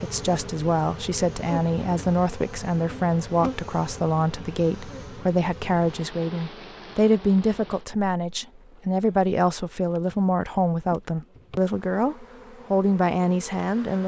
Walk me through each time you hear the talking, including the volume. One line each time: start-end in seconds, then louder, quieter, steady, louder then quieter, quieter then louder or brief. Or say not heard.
0.0-14.0 steady.